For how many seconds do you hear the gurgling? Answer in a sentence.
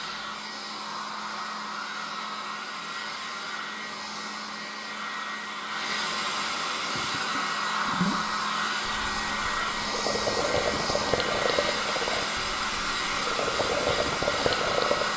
The gurgling can be heard for 8 seconds in total.